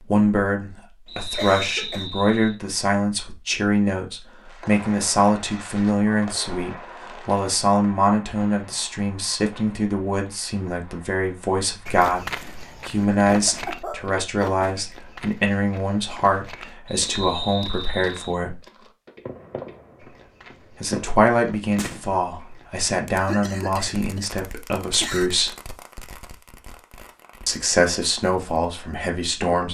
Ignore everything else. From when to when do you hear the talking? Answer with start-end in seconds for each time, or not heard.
0.0-18.6, 20.8-25.6, 27.4-29.6.